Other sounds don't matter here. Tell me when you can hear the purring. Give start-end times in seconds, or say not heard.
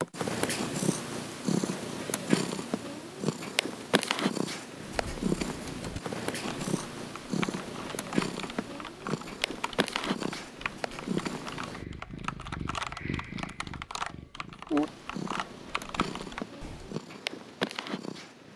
0.0-18.5.